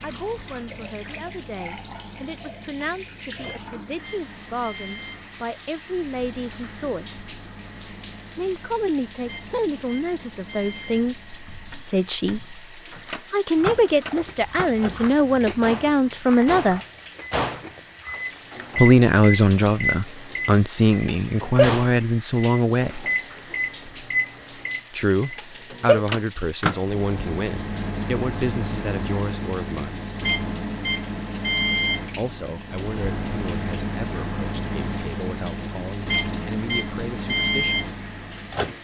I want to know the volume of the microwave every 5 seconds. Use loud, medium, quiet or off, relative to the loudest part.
quiet, quiet, medium, loud, loud, loud, loud, loud.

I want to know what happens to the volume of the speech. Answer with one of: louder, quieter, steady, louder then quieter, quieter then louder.
louder then quieter.